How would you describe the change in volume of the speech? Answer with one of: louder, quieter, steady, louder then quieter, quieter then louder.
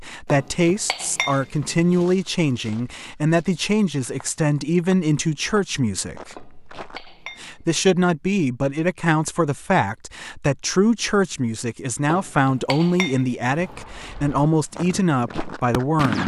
steady.